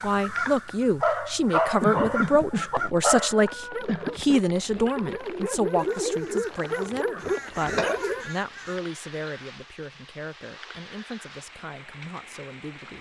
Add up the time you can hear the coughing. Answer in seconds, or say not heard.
3 s.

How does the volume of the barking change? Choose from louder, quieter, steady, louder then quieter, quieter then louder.
quieter then louder.